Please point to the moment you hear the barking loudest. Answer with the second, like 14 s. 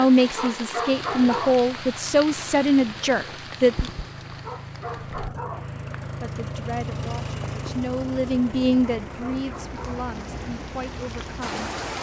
1 s.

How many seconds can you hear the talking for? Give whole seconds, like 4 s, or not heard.
9 s.